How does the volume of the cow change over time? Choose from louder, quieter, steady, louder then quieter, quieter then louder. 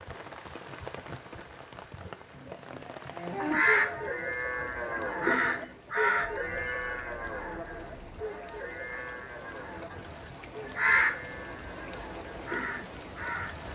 quieter.